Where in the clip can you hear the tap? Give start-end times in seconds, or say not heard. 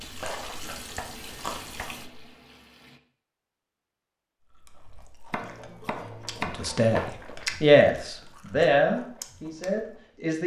0.0-3.0.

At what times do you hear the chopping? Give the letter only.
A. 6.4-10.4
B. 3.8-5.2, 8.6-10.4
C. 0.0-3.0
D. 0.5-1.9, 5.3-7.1
D.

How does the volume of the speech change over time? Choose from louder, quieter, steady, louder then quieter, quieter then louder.
louder then quieter.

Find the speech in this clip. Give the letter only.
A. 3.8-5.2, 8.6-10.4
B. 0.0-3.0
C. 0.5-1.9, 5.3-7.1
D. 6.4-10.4
D.